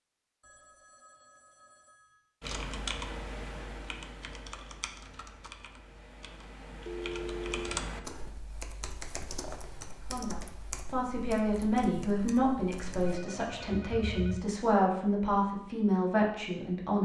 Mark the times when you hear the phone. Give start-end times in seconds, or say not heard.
0.4-2.3, 6.8-7.8, 12.9-14.4.